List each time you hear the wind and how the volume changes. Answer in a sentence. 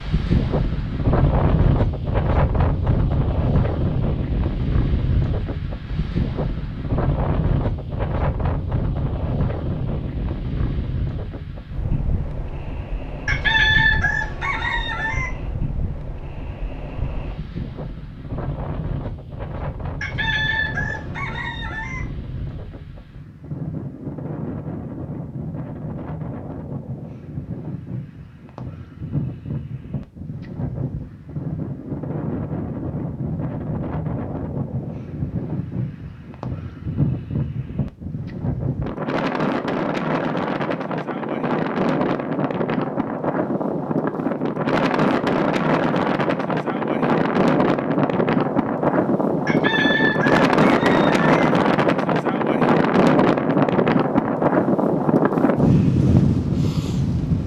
The wind can be heard from 0.0 to 57.4 s, getting quieter then louder.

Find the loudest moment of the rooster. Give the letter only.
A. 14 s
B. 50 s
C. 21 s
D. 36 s
A.